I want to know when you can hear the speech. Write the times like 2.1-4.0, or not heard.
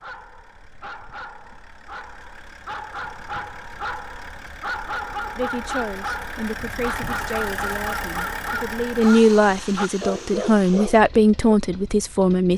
5.3-12.5.